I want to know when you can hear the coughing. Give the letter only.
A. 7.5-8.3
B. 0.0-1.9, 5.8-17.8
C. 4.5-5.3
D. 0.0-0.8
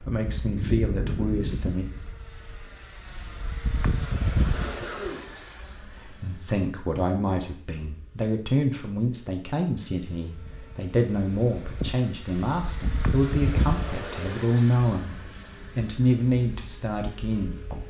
C.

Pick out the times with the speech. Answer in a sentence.
The speech can be heard from 0.0 to 1.9 s and from 5.8 to 17.8 s.